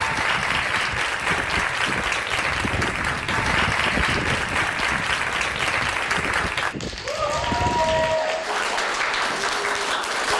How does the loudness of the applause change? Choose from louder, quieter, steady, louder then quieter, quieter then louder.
steady.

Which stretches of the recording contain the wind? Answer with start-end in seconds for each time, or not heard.
0.0-8.2.